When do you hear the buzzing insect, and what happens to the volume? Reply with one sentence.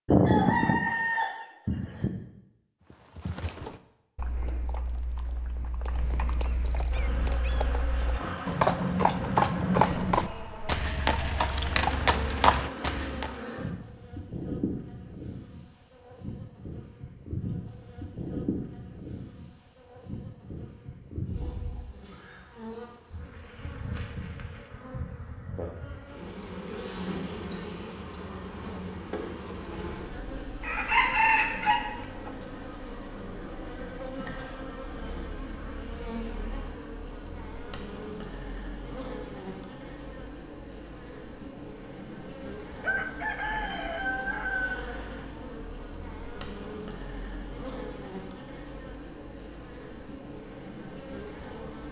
You can hear the buzzing insect from 6.9 to 51.8 s, at a steady volume.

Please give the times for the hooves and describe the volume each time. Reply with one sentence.
You can hear the hooves from 2.9 to 13.4 s, getting louder.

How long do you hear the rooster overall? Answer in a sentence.
The rooster can be heard for 6 seconds in total.